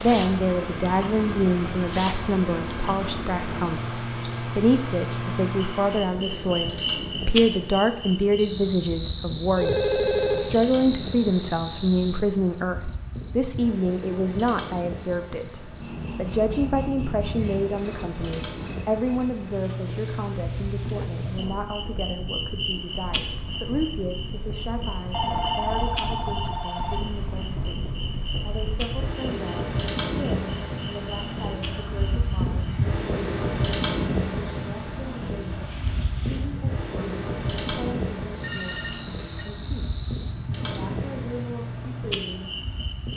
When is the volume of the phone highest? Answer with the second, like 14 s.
10 s.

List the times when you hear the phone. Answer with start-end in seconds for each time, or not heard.
9.6-10.5, 25.1-27.0, 38.4-39.5.